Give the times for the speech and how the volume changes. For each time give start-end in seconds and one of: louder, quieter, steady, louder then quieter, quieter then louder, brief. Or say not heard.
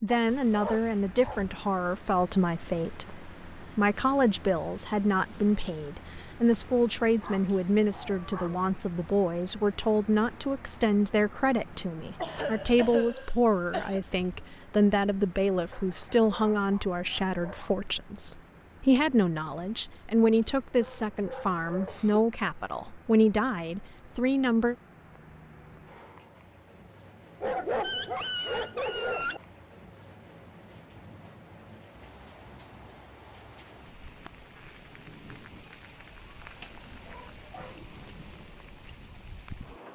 0.0-24.8 steady.